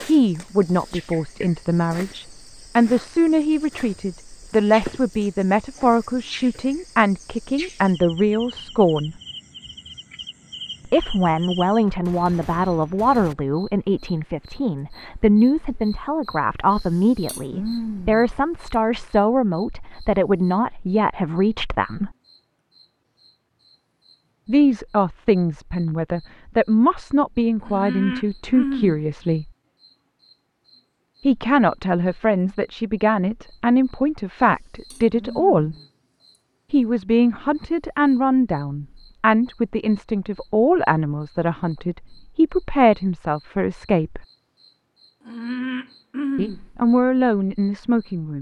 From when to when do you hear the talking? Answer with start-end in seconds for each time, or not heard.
0.0-9.2, 10.8-22.1, 24.4-29.5, 31.2-35.8, 36.7-44.2, 46.4-48.3.